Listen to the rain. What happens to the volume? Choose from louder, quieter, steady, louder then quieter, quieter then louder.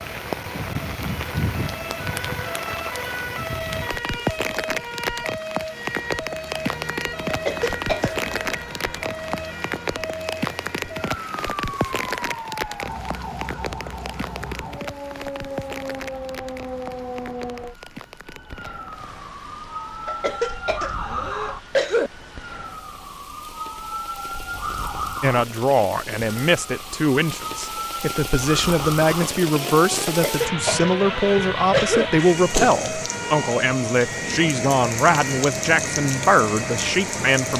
quieter then louder.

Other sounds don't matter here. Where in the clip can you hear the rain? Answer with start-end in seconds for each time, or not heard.
0.0-37.5.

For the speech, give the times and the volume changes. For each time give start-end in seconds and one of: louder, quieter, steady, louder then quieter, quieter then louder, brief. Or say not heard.
25.2-37.5 steady.